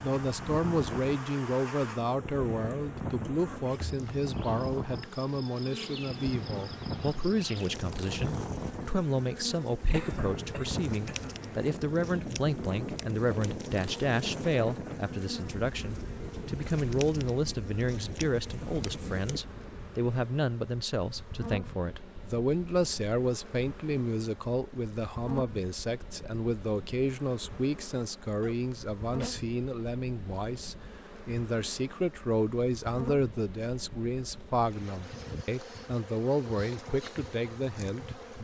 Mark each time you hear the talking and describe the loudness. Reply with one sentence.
You can hear the talking from 0.0 to 38.3 s, at a steady volume.